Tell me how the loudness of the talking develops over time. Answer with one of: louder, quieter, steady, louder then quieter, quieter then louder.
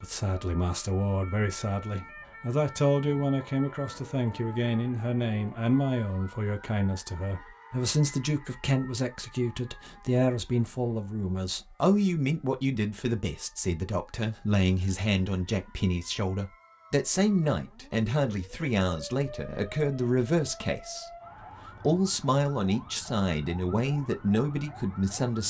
steady.